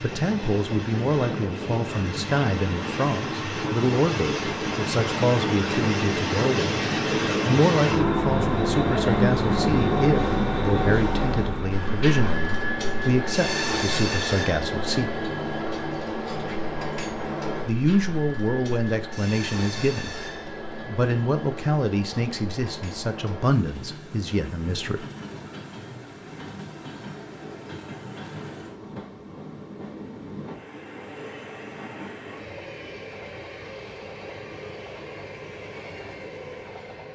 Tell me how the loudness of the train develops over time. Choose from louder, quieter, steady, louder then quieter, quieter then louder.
quieter.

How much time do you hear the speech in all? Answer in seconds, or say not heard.
21 s.